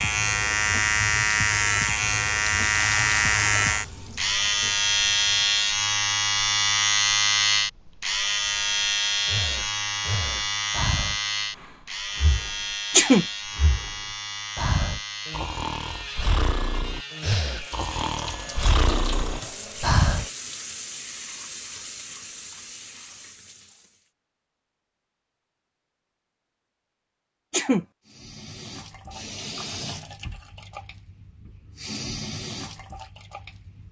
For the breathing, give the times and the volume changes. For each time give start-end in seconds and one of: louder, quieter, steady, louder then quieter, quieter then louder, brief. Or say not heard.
8.4-20.2 quieter then louder.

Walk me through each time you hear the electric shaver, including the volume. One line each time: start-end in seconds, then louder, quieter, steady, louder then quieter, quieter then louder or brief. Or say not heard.
0.0-20.3 quieter.